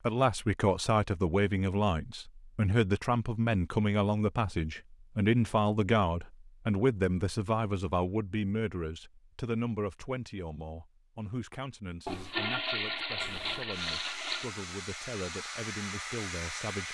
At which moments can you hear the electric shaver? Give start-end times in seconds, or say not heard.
not heard.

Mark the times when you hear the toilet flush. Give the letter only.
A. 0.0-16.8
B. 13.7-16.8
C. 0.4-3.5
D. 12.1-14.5
D.